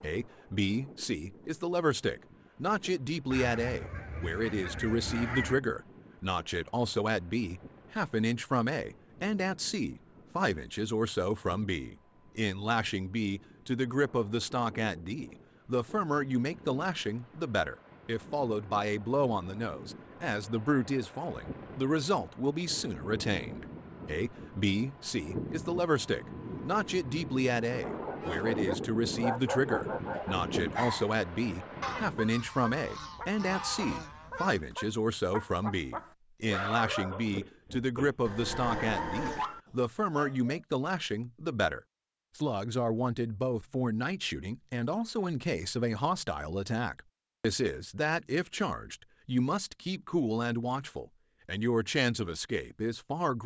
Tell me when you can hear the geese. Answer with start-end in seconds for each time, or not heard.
3.3-5.6, 31.8-34.6.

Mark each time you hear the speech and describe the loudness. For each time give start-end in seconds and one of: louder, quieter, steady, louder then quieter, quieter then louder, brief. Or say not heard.
0.0-53.4 steady.